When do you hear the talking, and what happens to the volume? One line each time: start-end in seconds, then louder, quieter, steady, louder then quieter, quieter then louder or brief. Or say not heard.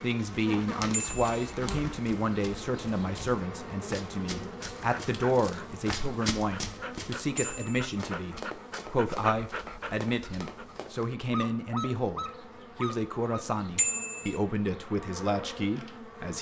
0.0-16.3 steady.